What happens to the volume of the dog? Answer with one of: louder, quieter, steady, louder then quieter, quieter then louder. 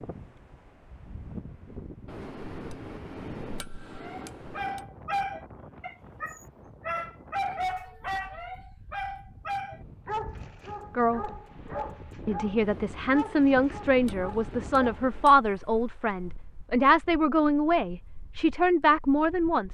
quieter.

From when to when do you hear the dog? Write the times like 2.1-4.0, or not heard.
4.0-15.1.